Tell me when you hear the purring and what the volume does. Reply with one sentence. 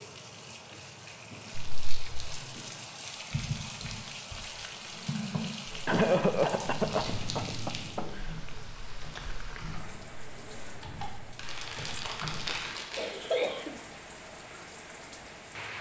You can't hear the purring here.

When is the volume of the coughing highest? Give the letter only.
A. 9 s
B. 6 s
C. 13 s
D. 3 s
B.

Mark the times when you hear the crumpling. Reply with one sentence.
The crumpling can be heard from 1.6 to 2.1 s, from 6.7 to 7.8 s and from 11.3 to 13.2 s.